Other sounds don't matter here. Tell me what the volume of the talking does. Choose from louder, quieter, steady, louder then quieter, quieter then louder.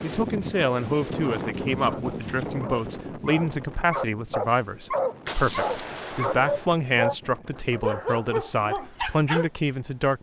steady.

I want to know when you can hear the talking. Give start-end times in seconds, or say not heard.
0.0-10.1.